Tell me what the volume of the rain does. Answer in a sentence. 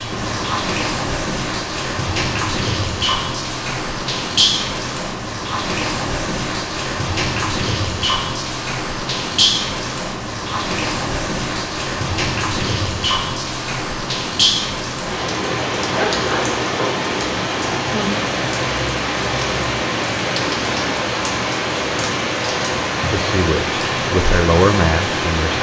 The volume of the rain stays about the same.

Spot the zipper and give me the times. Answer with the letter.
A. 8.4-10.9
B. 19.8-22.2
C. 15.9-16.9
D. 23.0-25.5
C.